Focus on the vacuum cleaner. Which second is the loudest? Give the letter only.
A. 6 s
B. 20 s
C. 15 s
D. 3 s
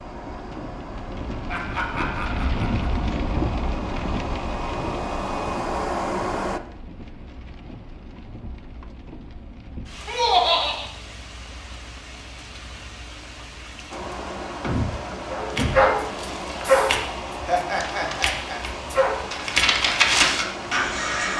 A.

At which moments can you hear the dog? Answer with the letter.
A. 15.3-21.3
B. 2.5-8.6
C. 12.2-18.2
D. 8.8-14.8
A.